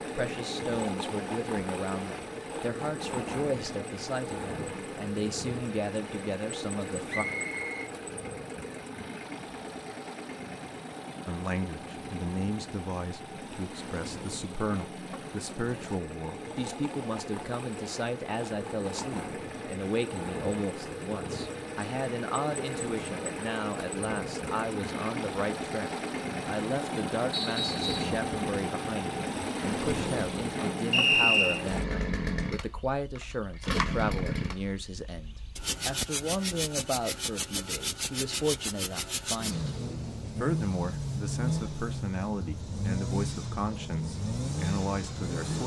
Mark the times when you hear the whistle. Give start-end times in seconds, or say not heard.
7.0-7.9, 27.3-28.1, 30.9-31.6.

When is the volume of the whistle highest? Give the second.
31 s.